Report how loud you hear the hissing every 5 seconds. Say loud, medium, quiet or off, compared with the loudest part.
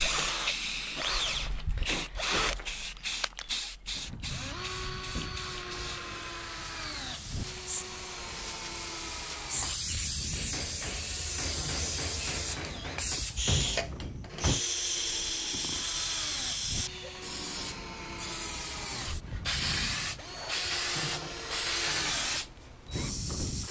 loud, medium, loud, loud, loud.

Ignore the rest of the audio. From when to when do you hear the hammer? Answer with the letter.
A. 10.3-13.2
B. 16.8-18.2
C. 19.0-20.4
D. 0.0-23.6
A.